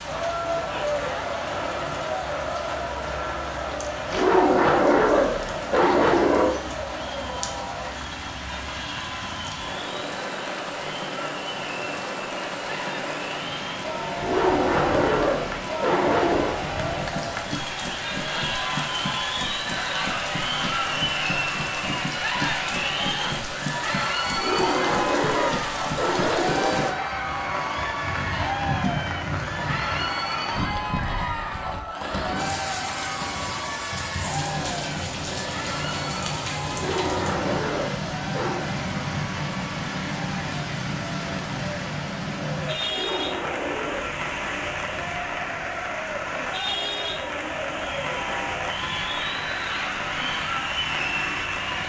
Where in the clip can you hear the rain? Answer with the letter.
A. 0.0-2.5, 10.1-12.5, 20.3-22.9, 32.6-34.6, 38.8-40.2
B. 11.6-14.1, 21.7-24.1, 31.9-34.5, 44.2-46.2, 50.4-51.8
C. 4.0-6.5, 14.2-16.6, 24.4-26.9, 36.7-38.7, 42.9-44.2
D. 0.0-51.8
D.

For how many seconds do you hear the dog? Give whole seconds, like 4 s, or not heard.
11 s.